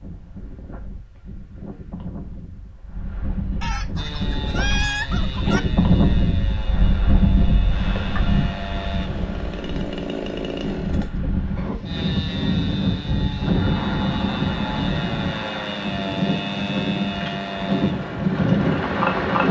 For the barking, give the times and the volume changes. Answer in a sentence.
The barking can't be heard in this clip.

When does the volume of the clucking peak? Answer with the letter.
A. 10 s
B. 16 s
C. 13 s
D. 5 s
D.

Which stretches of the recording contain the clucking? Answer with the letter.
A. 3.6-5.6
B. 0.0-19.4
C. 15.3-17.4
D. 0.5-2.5
A.